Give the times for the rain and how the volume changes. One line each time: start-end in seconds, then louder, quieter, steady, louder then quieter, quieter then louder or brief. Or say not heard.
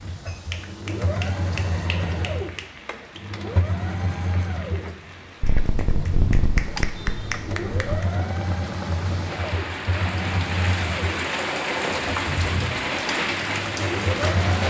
0.0-14.6 louder.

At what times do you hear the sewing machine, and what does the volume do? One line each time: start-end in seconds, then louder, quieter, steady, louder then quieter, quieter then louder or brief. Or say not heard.
0.0-14.6 steady.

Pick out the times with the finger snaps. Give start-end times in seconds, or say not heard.
0.2-2.6, 5.4-8.1, 11.9-12.4.